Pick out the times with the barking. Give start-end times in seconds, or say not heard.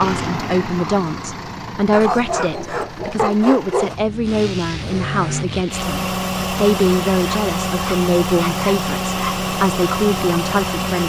1.9-4.0, 7.2-9.3.